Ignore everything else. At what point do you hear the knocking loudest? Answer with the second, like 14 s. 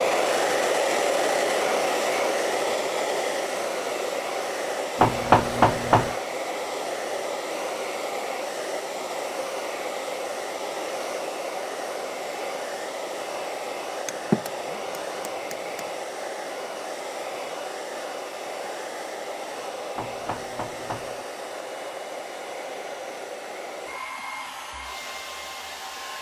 5 s.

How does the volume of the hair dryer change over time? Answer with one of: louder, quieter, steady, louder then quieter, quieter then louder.
quieter.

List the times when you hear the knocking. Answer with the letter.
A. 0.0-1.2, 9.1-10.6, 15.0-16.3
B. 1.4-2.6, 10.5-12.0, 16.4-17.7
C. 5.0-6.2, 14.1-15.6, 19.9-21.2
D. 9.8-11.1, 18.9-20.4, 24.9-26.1
C.